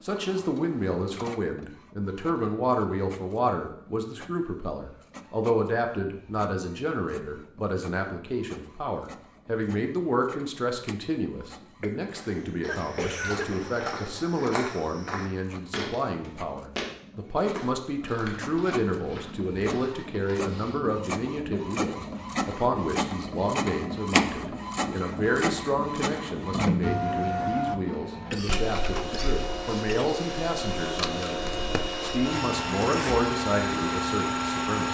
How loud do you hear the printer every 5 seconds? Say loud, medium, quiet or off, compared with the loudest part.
quiet, quiet, quiet, quiet, loud, loud, loud.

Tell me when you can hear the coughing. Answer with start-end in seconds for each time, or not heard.
11.8-13.6, 28.3-30.2.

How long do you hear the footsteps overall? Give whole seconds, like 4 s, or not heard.
8 s.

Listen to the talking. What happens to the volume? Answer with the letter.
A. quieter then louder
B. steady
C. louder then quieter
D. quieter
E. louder
B.